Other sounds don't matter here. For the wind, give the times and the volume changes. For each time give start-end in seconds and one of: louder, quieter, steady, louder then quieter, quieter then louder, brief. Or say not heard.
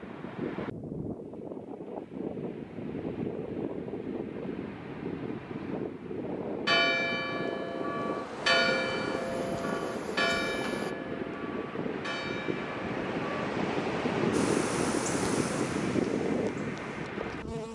0.0-17.6 louder.